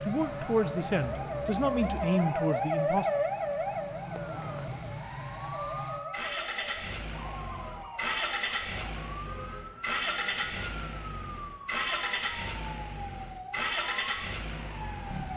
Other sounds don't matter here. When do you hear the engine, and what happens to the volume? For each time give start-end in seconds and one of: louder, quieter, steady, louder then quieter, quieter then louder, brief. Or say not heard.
0.0-15.3 louder.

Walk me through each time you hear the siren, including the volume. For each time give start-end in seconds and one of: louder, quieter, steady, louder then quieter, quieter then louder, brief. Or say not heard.
0.0-15.3 quieter.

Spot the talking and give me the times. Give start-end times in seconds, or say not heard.
0.0-3.1.